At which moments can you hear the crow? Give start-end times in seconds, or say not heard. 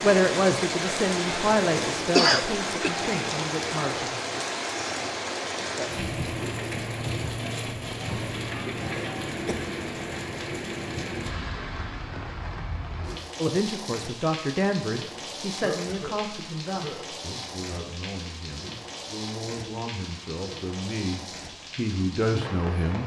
not heard.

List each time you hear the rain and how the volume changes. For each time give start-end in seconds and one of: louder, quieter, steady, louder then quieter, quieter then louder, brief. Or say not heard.
0.0-23.0 quieter.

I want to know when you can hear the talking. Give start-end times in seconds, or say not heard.
0.0-4.2, 13.4-23.0.